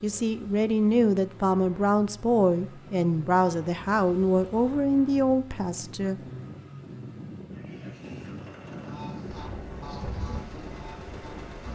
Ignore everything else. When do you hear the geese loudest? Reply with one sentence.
The volume of the geese peaks at 10 seconds.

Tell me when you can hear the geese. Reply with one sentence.
You can hear the geese from 8.8 to 11.6 s.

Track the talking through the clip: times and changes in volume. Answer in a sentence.
You can hear the talking from 0.0 to 6.2 s, at a steady volume.